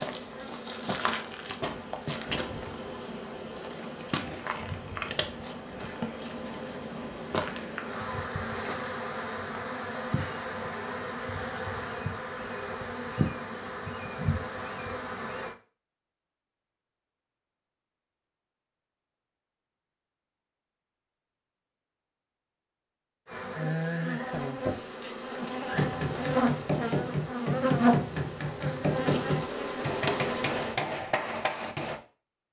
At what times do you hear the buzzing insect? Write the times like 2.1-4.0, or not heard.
0.0-15.6, 23.2-30.8.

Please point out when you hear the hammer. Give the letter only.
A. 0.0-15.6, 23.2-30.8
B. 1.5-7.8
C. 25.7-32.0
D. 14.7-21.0
C.